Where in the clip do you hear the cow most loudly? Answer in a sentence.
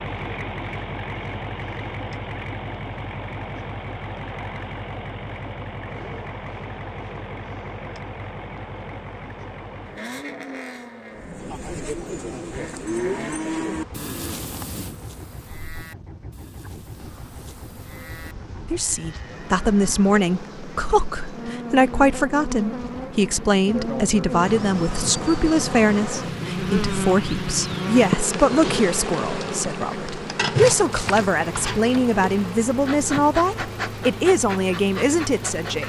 The volume of the cow peaks at 13 seconds.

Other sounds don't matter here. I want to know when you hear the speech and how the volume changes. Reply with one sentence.
You can hear the speech from 18.7 to 35.8 s, at a steady volume.